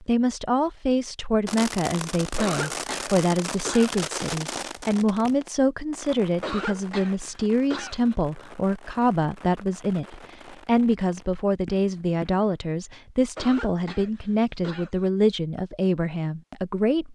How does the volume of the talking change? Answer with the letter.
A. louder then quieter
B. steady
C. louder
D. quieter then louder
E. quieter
B.